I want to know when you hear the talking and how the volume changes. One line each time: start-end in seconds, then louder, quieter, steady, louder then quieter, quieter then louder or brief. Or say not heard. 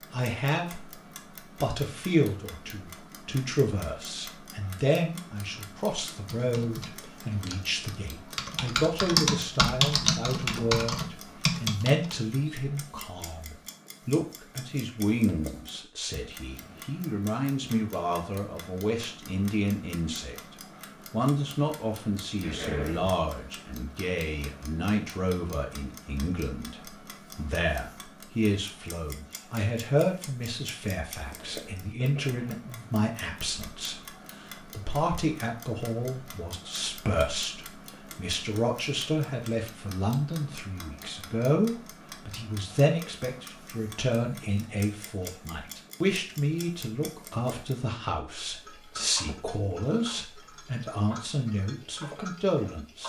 0.1-53.0 steady.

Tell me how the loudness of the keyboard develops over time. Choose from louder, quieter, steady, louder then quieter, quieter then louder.
louder.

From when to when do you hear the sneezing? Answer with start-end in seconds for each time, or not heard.
22.4-23.1, 31.3-32.6.